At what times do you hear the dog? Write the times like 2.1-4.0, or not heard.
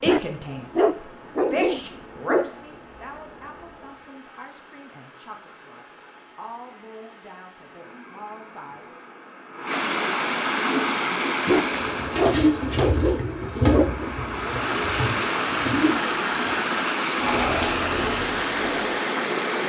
0.1-2.5, 11.4-14.1.